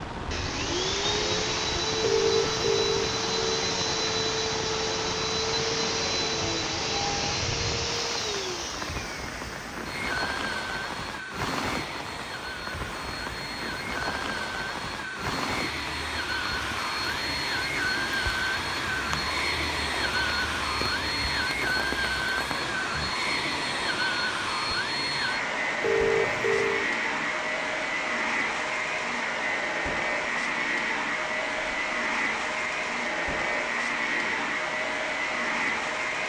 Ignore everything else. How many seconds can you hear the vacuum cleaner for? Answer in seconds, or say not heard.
36 s.